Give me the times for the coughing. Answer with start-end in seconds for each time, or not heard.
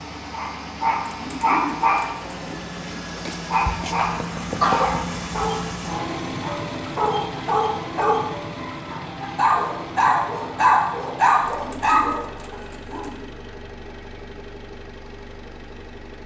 4.0-5.0.